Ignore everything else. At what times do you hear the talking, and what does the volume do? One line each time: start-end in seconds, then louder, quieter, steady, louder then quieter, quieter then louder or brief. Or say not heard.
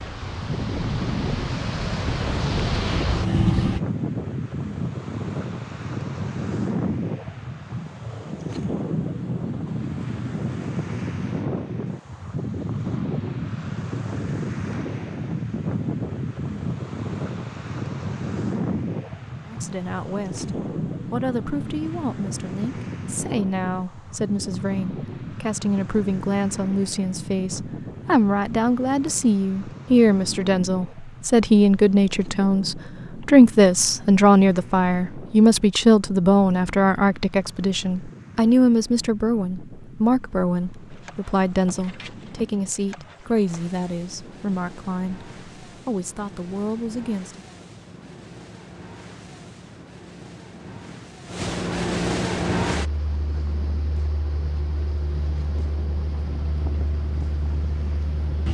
19.4-47.5 louder then quieter.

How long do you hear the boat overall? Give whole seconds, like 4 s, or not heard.
21 s.